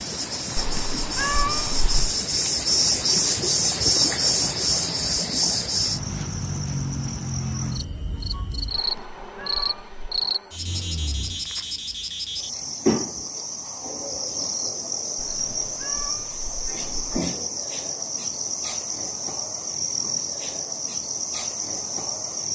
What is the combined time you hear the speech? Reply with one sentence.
The speech can't be heard in this clip.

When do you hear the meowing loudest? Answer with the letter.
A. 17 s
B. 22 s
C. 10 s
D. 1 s
D.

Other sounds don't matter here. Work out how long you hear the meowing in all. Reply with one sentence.
The meowing can be heard for 5 seconds in total.